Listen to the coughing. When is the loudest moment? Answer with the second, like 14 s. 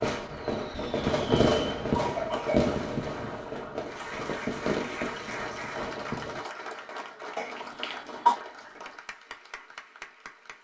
8 s.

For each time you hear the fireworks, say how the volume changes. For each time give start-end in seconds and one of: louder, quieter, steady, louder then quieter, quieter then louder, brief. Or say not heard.
0.0-6.4 quieter.